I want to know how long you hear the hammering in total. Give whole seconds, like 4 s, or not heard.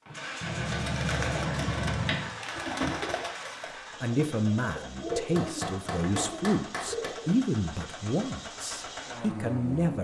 4 s.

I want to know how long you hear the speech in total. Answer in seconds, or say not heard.
6 s.